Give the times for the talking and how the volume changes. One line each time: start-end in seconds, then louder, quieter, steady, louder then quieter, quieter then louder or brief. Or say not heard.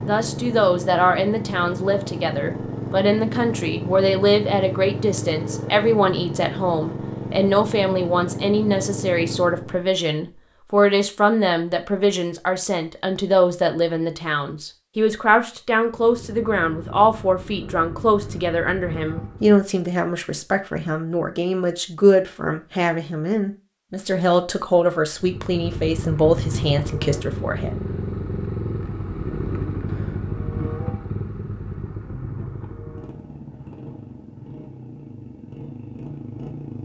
0.0-27.8 steady.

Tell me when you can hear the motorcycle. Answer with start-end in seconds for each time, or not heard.
0.0-9.8, 15.8-19.6, 25.2-36.8.